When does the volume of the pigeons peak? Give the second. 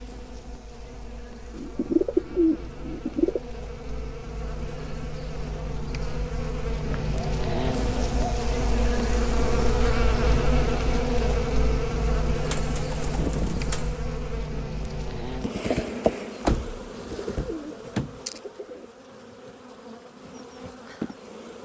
2 s.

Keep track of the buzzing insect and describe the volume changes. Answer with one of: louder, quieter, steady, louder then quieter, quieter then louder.
louder then quieter.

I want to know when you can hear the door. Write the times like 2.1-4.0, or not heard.
16.4-18.2.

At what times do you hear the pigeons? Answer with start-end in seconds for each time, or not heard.
1.6-3.4, 7.0-8.5, 12.4-14.0, 17.0-18.9.